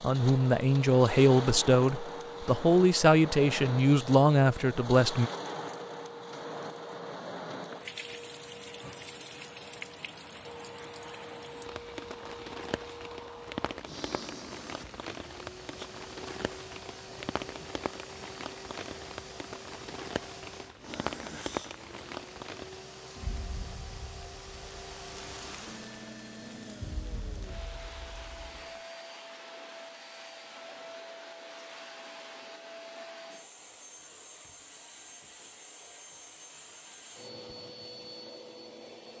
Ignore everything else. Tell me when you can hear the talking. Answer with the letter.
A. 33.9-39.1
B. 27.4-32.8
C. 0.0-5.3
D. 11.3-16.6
C.